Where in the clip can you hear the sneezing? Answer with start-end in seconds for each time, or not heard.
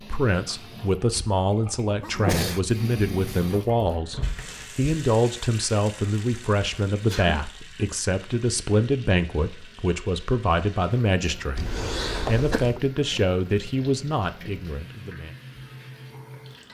2.0-3.5, 6.9-7.5, 11.6-12.8.